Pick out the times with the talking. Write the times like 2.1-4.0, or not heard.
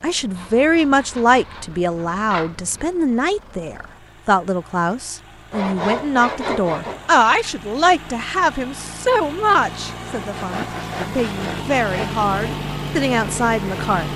0.0-14.1.